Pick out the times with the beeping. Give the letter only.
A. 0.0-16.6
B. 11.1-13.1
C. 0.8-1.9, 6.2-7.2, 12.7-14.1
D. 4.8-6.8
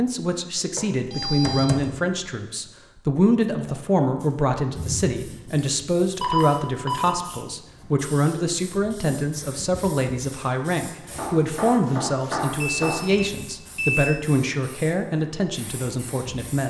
C.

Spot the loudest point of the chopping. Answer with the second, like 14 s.
12 s.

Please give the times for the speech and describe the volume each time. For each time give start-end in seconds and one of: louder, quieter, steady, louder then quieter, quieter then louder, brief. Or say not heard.
0.0-16.6 steady.